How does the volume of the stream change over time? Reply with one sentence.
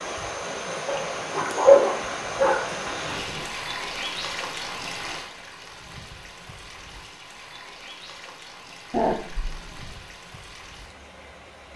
The loudness of the stream goes down.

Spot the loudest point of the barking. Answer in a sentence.
The volume of the barking peaks at 2 seconds.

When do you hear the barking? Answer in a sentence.
You can hear the barking from 0.8 to 3.5 s and from 8.9 to 9.9 s.